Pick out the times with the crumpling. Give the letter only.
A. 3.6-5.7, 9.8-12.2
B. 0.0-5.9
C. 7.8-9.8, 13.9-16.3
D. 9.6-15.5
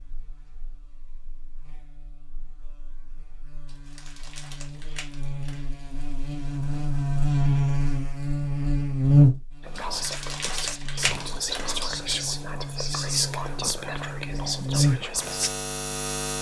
A.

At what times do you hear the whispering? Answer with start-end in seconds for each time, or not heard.
9.6-15.5.